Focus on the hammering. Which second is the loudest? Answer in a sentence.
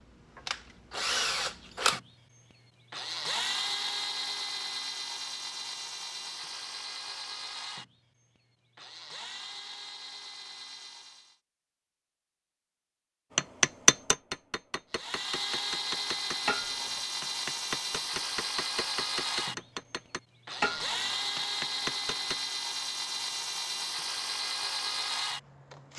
The volume of the hammering peaks at 14 seconds.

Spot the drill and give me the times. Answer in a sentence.
You can hear the drill from 0.0 to 11.4 s and from 14.9 to 25.9 s.